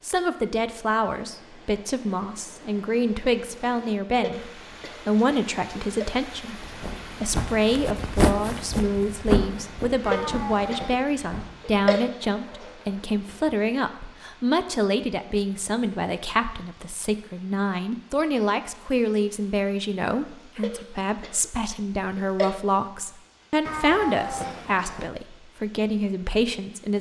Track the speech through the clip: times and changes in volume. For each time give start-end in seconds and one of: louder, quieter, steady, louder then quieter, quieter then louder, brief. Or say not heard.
0.0-26.9 steady.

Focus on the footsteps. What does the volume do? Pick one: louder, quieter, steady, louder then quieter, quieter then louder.
louder then quieter.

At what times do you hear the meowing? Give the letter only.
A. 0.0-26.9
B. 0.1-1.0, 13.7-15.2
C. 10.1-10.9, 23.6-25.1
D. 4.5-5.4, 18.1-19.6
C.